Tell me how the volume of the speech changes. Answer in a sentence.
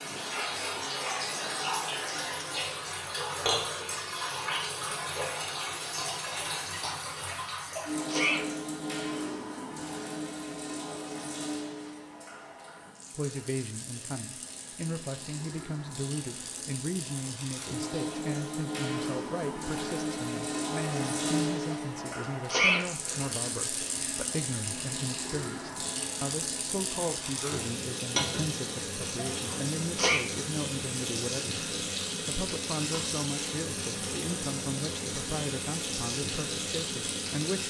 The loudness of the speech stays about the same.